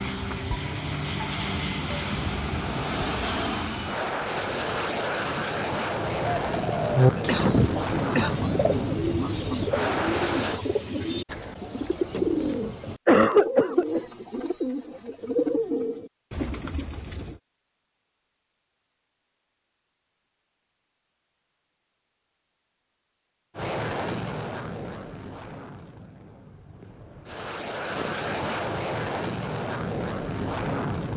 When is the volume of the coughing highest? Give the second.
13 s.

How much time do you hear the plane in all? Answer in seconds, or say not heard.
18 s.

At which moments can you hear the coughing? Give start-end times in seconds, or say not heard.
7.2-8.4, 12.8-14.0, 26.8-28.1.